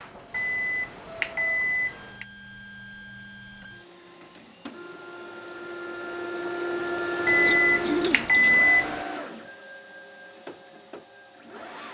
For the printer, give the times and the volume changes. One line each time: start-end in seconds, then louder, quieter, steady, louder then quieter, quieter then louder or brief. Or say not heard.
0.0-11.9 louder then quieter.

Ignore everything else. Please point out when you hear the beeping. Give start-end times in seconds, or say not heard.
0.3-2.2, 7.2-9.1.